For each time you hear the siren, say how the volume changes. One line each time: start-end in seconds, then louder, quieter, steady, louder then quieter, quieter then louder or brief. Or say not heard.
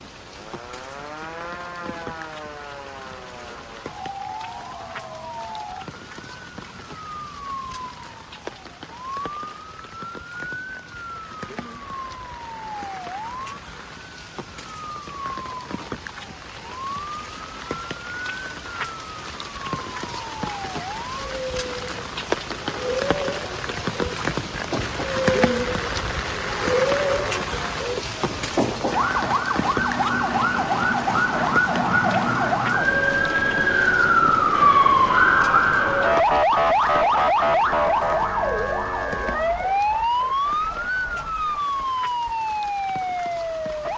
0.0-43.9 louder.